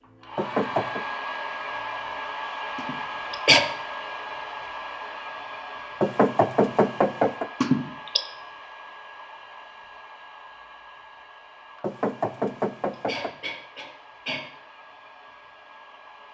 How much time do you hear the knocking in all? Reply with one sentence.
You can hear the knocking for 4 seconds altogether.